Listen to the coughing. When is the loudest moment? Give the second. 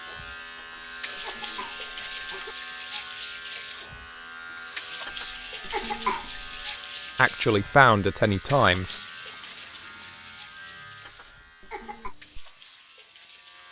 6 s.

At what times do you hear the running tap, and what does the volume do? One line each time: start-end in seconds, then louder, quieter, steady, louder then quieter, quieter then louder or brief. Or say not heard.
0.1-13.6 quieter.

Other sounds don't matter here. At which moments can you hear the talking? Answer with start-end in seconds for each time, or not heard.
7.2-9.0.